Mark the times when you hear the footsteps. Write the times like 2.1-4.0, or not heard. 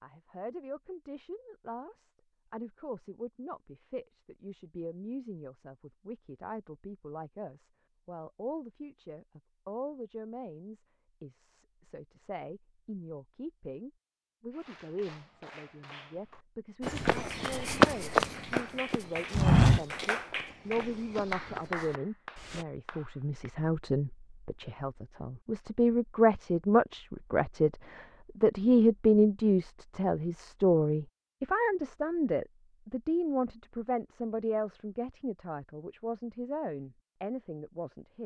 16.8-22.6.